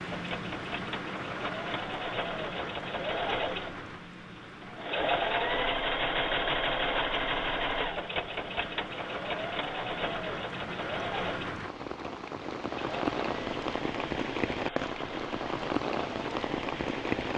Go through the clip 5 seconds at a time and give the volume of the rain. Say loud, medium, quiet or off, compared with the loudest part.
medium, medium, loud, loud.